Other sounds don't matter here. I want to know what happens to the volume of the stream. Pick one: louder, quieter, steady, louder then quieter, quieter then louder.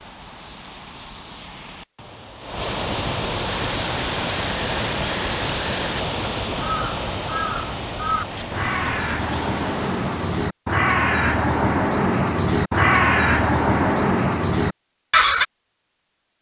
louder then quieter.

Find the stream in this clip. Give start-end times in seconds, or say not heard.
0.0-10.4.